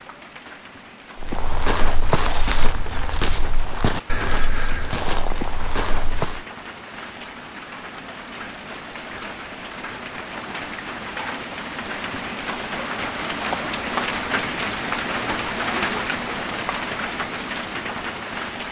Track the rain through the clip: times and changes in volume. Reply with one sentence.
You can hear the rain from 0.0 to 18.6 s, getting louder.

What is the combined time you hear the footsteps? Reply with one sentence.
The footsteps can be heard for 5 seconds in total.